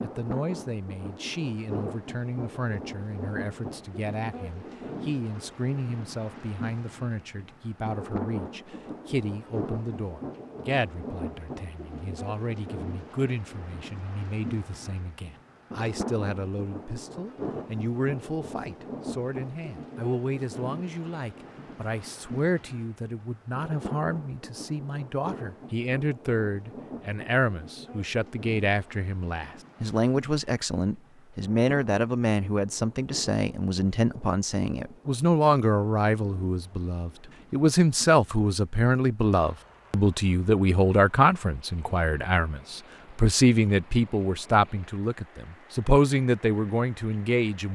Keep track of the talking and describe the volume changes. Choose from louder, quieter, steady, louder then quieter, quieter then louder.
louder.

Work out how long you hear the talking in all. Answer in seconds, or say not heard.
48 s.